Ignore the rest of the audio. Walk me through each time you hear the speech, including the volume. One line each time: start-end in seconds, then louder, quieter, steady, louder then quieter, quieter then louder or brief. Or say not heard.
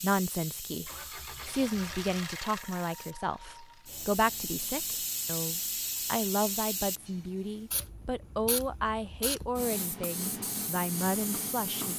0.0-11.9 steady.